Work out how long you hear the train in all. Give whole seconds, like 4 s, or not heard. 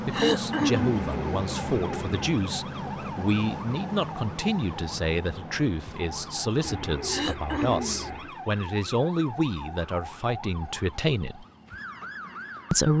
13 s.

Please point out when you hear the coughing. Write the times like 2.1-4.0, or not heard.
0.1-1.0, 7.1-8.1.